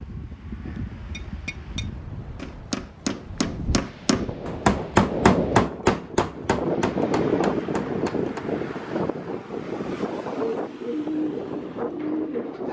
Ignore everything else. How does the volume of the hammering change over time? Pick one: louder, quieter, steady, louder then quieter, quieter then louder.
louder then quieter.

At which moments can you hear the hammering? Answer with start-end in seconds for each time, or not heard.
1.1-8.5.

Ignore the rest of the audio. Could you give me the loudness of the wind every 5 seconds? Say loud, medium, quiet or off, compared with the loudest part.
medium, loud, medium.